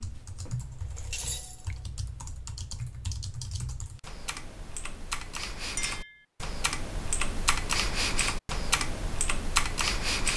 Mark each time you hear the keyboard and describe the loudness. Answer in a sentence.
The keyboard can be heard from 0.0 to 10.3 s, getting louder.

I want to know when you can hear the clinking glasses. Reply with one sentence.
The clinking glasses can be heard from 0.8 to 1.8 s and from 5.8 to 6.2 s.